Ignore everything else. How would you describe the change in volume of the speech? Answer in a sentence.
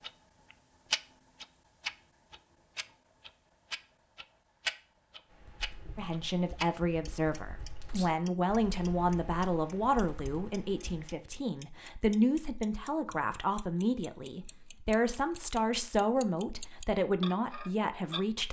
The loudness of the speech stays about the same.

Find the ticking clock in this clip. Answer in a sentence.
You can hear the ticking clock from 0.0 to 18.2 s.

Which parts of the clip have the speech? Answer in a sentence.
You can hear the speech from 6.0 to 18.4 s.